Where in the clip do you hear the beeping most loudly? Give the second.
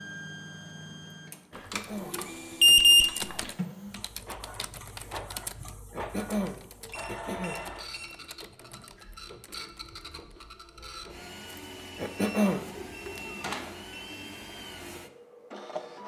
3 s.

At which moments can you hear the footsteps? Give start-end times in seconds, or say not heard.
not heard.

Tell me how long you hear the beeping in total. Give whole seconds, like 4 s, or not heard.
5 s.